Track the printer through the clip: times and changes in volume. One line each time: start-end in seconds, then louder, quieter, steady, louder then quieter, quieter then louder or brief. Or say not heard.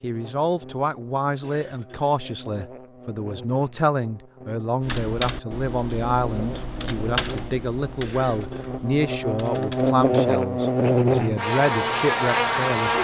not heard.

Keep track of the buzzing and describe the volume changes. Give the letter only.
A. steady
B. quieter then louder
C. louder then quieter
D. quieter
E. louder
E.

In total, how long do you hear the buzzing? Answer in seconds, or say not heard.
13 s.